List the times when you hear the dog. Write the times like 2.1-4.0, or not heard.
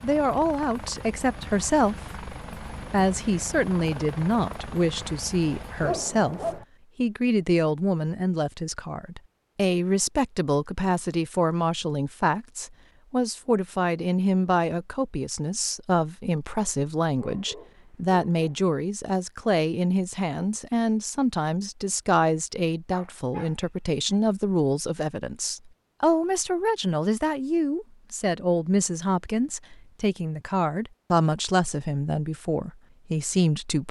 5.8-6.7, 17.1-18.6, 22.9-24.2.